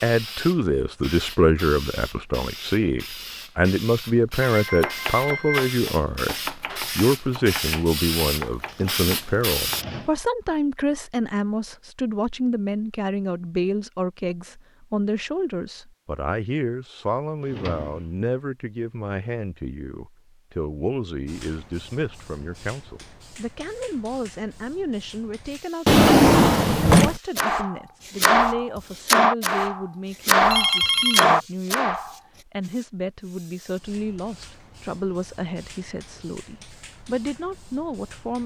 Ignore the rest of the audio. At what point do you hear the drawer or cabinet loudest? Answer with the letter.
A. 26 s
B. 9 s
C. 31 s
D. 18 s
A.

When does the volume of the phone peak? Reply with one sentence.
The volume of the phone peaks at 31 seconds.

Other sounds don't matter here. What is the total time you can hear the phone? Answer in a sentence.
You can hear the phone for 2 seconds altogether.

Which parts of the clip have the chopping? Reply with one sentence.
The chopping can be heard from 4.7 to 9.9 s and from 27.4 to 32.1 s.